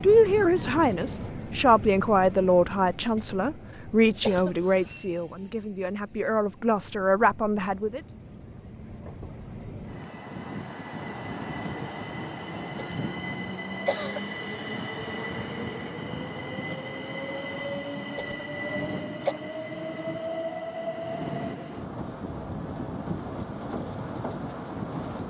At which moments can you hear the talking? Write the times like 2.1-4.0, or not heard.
0.0-8.0.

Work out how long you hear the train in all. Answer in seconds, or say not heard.
25 s.